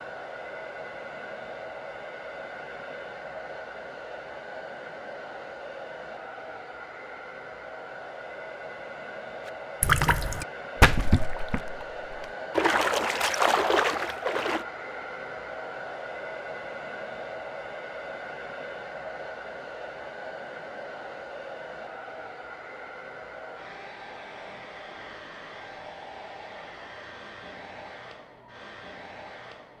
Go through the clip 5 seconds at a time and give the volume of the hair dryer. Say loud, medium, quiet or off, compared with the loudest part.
loud, loud, loud, loud, loud, medium.